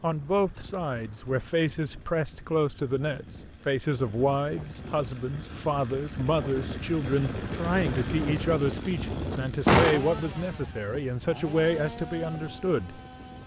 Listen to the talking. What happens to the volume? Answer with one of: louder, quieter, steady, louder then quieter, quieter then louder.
steady.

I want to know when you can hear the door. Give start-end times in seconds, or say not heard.
9.7-10.4.